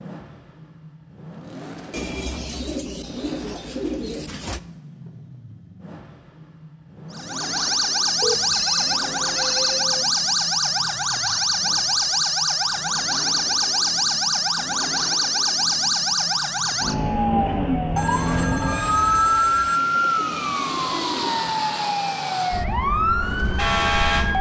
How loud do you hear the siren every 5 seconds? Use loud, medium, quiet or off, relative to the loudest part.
off, loud, loud, loud, loud.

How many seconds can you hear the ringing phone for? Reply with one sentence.
The ringing phone can be heard for 4 seconds in total.